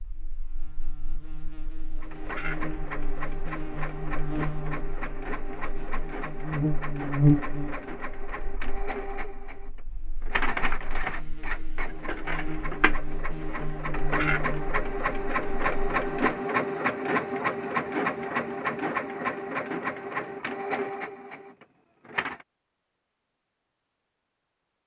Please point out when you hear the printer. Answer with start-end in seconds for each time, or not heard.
2.0-22.4.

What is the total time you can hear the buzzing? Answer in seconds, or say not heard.
16 s.